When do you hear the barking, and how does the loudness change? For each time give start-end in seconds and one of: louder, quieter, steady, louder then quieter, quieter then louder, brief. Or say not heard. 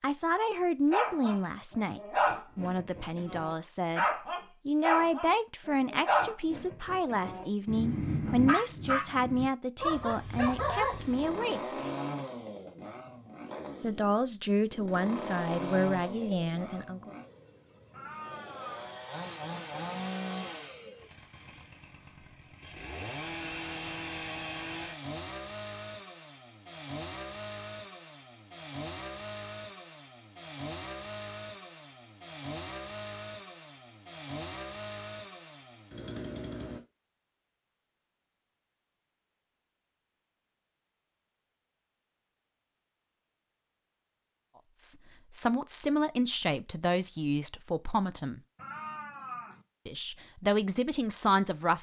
0.3-11.4 steady.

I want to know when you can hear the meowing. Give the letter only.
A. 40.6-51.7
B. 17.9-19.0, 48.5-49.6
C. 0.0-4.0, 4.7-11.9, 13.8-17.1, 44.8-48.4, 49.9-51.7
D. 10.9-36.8
B.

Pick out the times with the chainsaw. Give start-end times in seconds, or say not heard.
10.9-36.8.